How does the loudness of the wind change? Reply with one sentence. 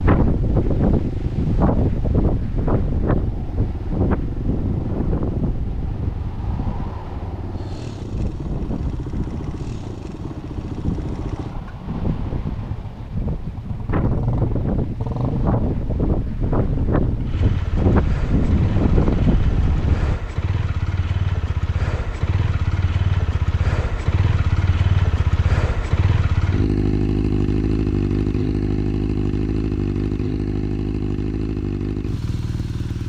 The loudness of the wind goes down, then up.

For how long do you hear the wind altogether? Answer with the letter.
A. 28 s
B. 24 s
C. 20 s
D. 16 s
C.